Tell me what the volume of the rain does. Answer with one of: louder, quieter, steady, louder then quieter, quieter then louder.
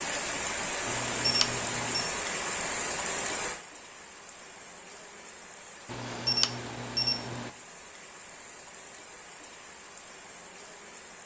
quieter.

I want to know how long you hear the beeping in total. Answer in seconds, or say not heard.
3 s.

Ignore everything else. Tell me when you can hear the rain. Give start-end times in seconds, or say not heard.
0.0-11.2.